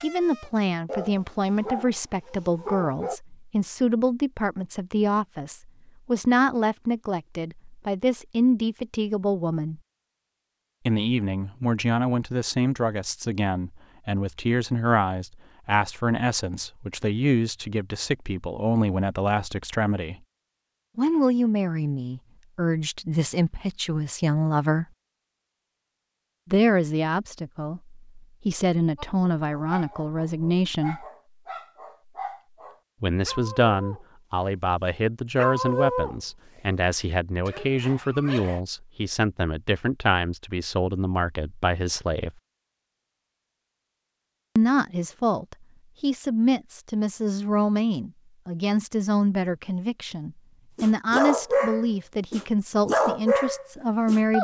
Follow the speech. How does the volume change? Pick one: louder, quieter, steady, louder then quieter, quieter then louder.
steady.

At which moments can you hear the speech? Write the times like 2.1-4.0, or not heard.
0.0-9.8, 10.8-20.1, 20.9-24.9, 26.5-31.1, 33.0-42.3, 44.5-54.3.